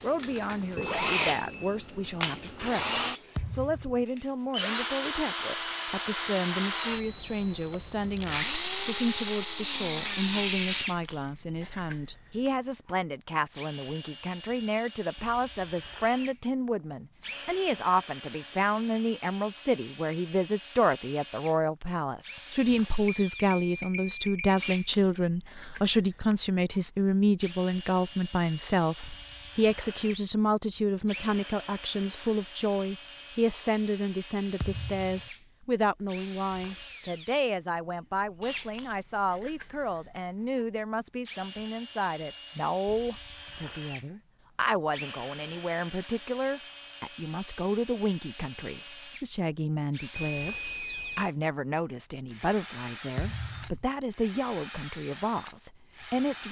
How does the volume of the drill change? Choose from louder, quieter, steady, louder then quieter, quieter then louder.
quieter.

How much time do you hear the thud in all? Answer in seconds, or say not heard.
2 s.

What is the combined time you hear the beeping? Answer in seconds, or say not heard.
4 s.